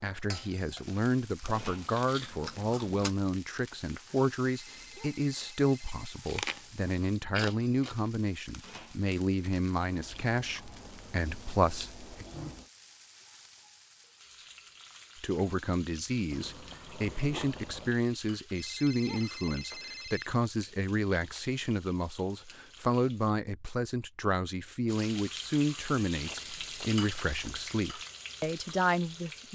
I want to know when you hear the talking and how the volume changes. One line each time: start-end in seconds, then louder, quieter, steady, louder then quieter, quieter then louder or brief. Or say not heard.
0.0-12.2 steady
15.2-29.5 steady.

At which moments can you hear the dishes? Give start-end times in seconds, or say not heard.
not heard.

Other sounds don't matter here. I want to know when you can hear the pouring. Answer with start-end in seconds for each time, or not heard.
not heard.